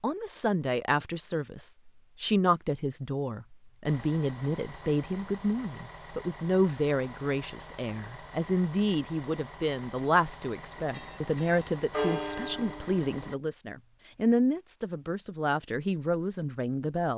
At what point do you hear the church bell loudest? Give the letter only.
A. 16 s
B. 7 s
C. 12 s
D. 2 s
C.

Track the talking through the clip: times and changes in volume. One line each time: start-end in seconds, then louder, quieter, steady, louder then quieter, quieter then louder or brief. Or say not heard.
0.0-17.1 steady.